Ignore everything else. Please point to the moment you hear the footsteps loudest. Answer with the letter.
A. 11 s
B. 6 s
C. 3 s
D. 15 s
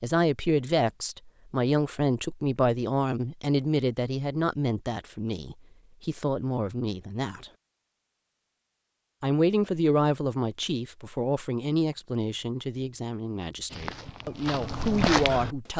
D.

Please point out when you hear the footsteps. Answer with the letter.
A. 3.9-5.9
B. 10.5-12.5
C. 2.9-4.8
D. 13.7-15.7
D.